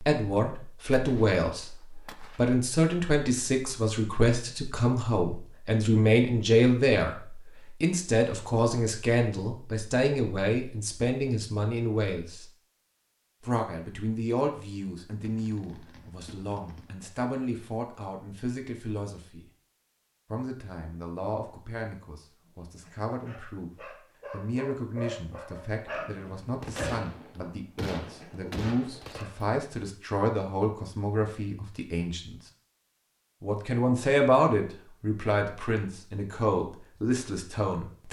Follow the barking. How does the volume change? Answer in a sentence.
The loudness of the barking goes up, then down.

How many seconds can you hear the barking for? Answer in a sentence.
You can hear the barking for 7 seconds altogether.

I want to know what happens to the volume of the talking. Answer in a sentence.
The volume of the talking goes down, then up.